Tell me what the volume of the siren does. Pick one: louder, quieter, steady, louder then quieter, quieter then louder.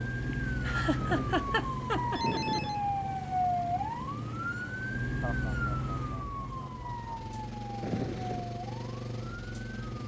quieter.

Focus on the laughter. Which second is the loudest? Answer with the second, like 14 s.
1 s.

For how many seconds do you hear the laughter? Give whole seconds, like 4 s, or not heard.
4 s.